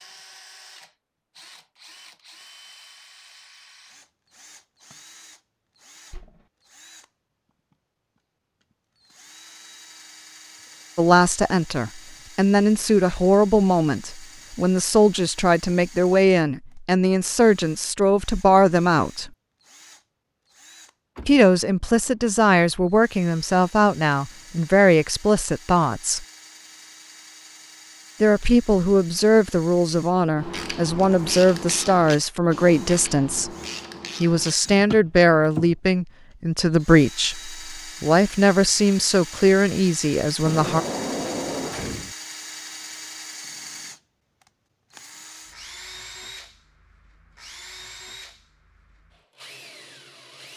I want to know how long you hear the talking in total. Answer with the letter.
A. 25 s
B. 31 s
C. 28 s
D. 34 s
A.